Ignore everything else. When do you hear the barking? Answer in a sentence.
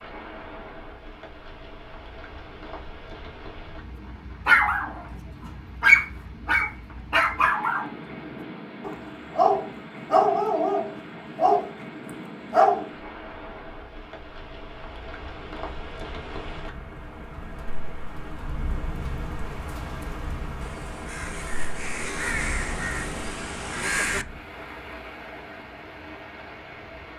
You can hear the barking from 4.5 to 11.7 s and from 12.5 to 12.9 s.